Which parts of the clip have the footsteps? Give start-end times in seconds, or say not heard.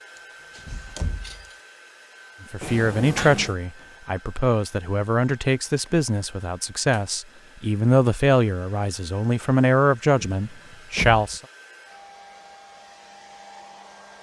not heard.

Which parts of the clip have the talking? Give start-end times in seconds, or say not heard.
2.4-11.4.